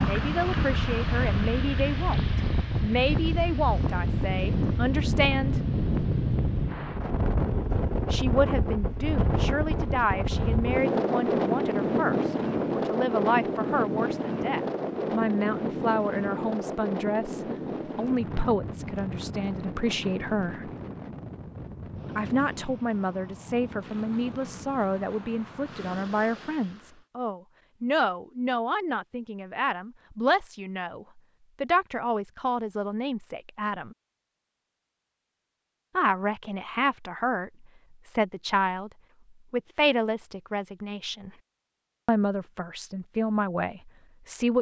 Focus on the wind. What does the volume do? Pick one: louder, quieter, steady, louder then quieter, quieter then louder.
quieter.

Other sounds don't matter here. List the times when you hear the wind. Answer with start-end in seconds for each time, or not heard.
0.0-27.1.